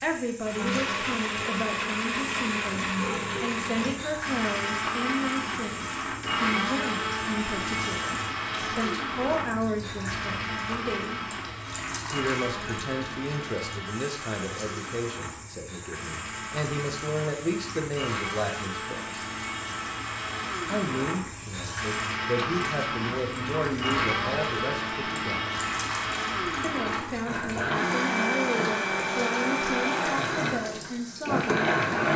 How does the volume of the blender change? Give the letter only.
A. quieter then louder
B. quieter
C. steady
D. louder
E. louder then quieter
A.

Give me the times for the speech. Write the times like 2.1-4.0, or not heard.
0.0-11.2, 12.1-19.2, 20.6-25.6, 26.6-32.1.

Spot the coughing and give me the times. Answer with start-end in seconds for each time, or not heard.
not heard.